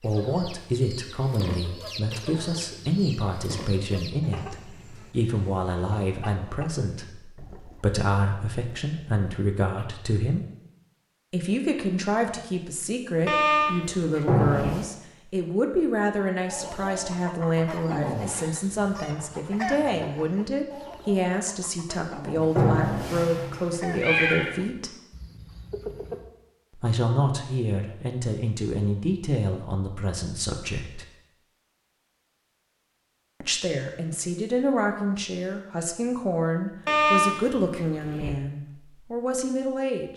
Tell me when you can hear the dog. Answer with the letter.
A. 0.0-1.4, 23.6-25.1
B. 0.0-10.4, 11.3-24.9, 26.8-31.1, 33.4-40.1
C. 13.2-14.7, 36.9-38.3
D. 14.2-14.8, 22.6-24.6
C.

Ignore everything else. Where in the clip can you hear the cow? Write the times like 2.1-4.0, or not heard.
not heard.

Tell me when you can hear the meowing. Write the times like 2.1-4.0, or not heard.
14.2-14.8, 22.6-24.6.